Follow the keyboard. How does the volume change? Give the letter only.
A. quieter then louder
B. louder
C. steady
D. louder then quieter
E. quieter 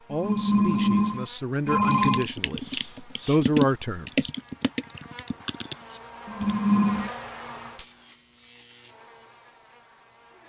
D.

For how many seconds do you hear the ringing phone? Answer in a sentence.
You can hear the ringing phone for 3 seconds altogether.